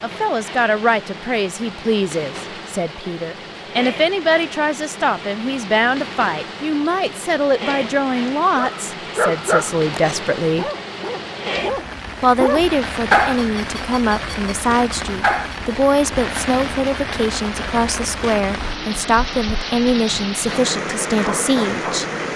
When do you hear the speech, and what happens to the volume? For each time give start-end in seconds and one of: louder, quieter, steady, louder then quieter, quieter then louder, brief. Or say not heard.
0.0-10.7 steady
12.2-22.1 steady.